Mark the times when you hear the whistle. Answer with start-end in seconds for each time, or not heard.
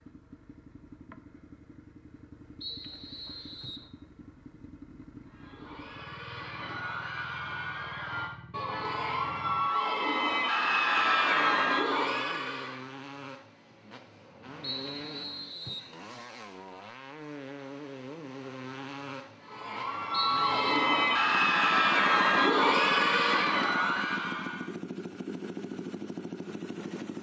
2.6-3.9, 14.6-15.9, 20.1-20.6.